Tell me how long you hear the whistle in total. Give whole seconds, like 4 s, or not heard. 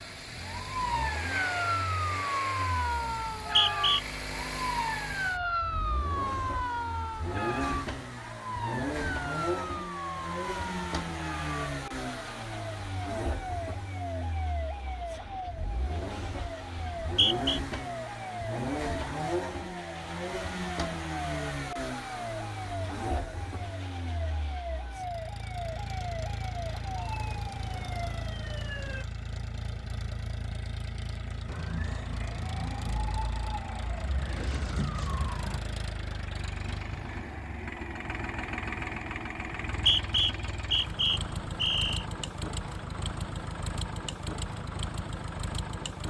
4 s.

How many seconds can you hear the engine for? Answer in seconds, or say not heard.
46 s.